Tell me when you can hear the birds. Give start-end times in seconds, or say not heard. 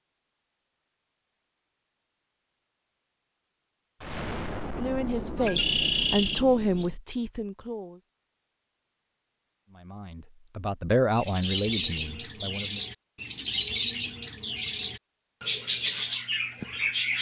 5.3-17.1.